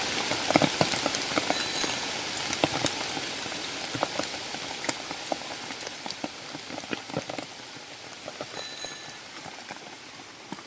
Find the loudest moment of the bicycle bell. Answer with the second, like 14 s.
2 s.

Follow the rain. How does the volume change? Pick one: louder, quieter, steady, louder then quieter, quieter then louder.
quieter.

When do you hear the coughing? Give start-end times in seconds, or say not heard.
not heard.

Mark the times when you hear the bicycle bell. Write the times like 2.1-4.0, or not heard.
1.5-2.0, 8.5-9.2.